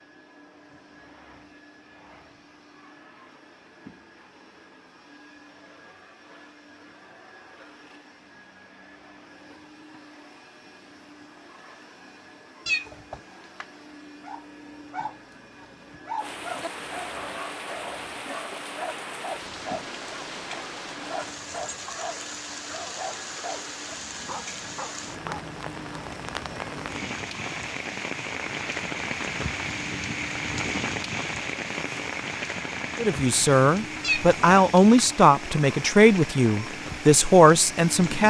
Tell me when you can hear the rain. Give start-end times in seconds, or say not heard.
16.1-38.2.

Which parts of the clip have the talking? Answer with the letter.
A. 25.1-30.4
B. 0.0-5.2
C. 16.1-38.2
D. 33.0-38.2
D.